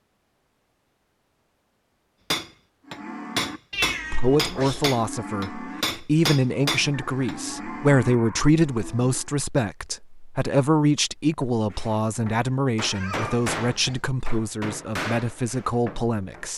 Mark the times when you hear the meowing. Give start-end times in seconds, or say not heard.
3.7-4.8, 12.9-14.1.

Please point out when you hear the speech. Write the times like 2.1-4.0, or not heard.
4.1-16.5.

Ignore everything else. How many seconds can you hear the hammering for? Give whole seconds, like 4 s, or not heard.
10 s.